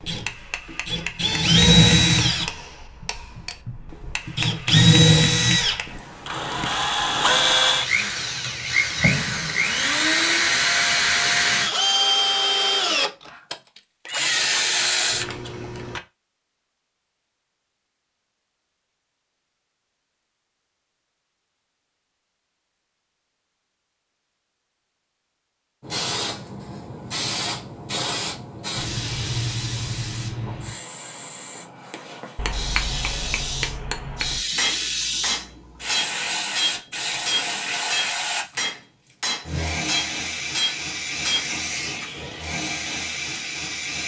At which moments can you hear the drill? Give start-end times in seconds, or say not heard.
0.0-16.0.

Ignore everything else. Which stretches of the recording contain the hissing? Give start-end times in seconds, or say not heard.
25.8-44.0.